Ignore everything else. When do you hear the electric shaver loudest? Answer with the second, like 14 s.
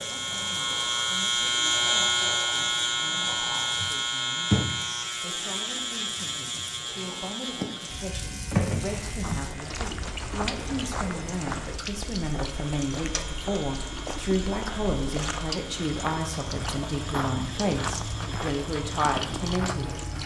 2 s.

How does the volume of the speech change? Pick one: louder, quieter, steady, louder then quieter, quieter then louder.
louder.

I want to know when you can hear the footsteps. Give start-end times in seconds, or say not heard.
8.8-20.0.